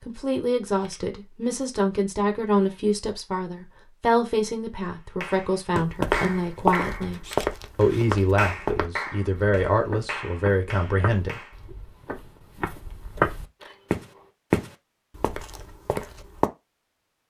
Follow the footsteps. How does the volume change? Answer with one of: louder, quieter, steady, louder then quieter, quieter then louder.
quieter then louder.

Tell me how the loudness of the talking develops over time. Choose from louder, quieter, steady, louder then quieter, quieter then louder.
steady.